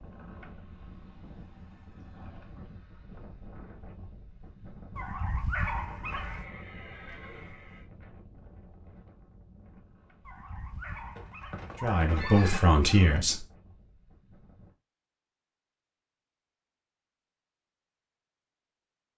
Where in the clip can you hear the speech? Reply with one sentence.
The speech can be heard from 11.8 to 13.4 s.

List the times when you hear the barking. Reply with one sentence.
You can hear the barking from 5.0 to 6.5 s and from 10.2 to 13.2 s.